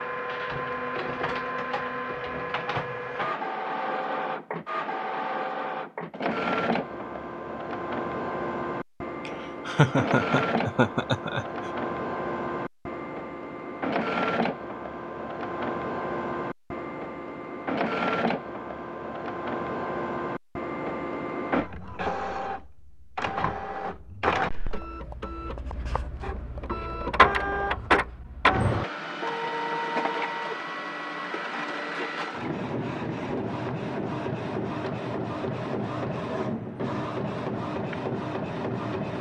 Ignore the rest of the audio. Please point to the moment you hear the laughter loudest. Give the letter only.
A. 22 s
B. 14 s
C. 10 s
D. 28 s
C.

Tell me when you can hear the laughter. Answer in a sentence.
The laughter can be heard from 9.2 to 11.7 s.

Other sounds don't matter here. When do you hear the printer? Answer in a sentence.
The printer can be heard from 0.0 to 39.1 s.